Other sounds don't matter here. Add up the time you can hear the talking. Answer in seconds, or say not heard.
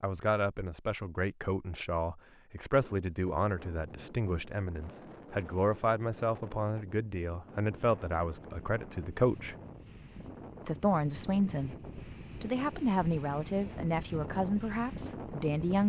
14 s.